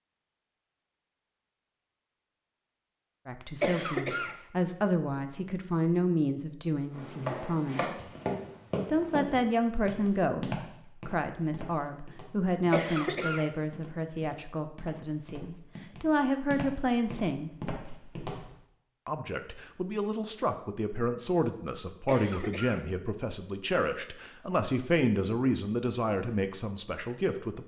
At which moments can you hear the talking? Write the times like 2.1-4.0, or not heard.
3.2-8.1, 8.8-17.5, 19.1-27.6.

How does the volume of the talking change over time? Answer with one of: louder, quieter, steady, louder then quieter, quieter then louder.
steady.